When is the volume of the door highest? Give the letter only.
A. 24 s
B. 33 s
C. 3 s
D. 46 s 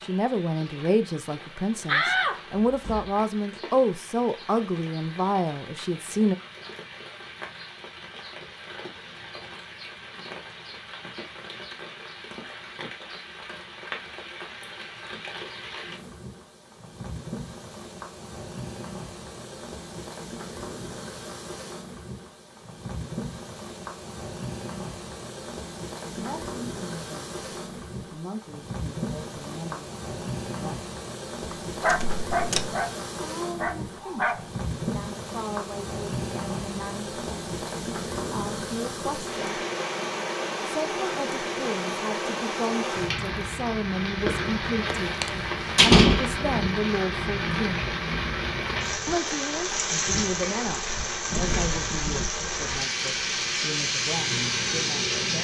D.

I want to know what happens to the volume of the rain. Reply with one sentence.
The loudness of the rain goes up.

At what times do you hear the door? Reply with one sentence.
The door can be heard from 1.9 to 3.6 s, from 31.9 to 32.7 s and from 44.9 to 46.4 s.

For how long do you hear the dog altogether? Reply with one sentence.
The dog can be heard for 3 seconds in total.